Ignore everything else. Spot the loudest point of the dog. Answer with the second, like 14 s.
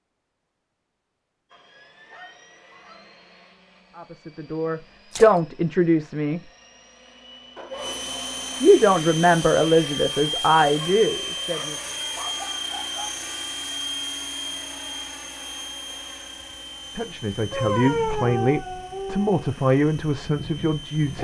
18 s.